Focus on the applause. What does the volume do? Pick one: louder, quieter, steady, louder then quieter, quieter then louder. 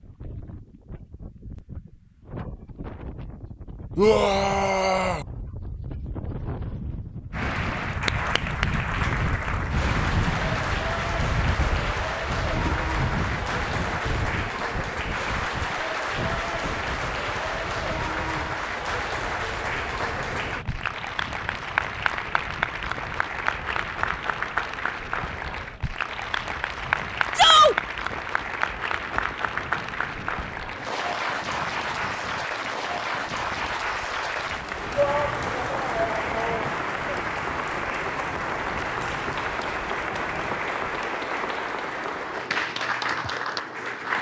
steady.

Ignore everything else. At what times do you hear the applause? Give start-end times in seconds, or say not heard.
7.3-44.1.